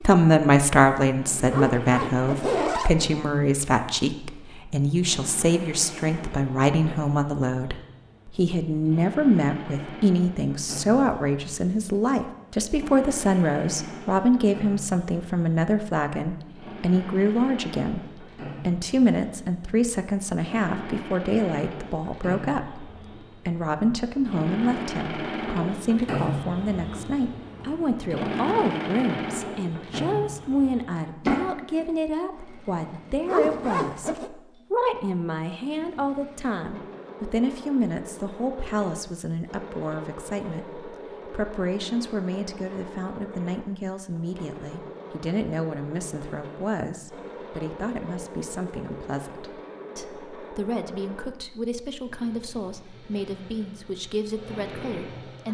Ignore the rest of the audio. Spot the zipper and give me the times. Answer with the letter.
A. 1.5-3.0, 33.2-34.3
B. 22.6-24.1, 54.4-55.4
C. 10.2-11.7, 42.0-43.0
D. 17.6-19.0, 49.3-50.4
A.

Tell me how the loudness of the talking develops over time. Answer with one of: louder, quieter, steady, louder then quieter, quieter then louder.
quieter.